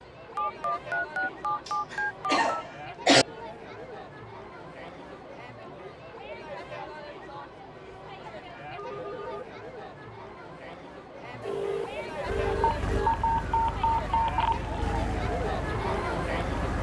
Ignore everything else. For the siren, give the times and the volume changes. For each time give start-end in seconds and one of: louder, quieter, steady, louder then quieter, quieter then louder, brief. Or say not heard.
12.2-16.7 quieter.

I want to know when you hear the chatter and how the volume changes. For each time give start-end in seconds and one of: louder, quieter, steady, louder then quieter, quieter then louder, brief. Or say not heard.
0.0-16.7 louder.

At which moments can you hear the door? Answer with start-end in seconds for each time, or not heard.
not heard.